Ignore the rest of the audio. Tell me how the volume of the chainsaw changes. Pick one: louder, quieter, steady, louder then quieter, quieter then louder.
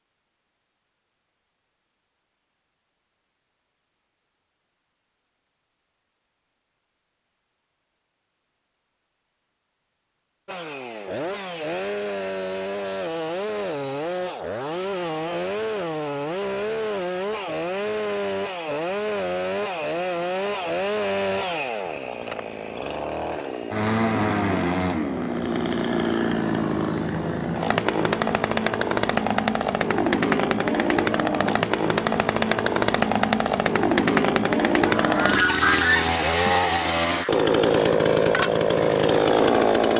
louder.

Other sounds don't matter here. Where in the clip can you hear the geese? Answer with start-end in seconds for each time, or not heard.
34.9-36.5.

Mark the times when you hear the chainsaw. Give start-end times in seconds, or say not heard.
10.4-39.9.